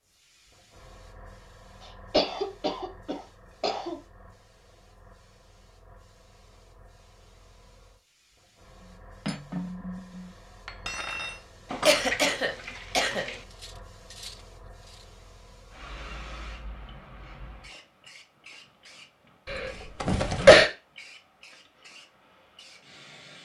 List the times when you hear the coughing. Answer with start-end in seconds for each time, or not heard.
2.1-4.0, 11.8-13.2, 19.5-20.7.